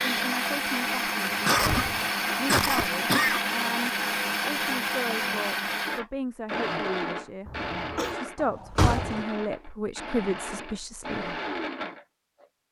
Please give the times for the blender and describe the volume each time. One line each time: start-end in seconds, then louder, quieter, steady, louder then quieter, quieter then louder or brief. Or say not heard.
0.0-12.6 quieter.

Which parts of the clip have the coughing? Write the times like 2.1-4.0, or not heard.
1.4-3.4, 7.5-8.2.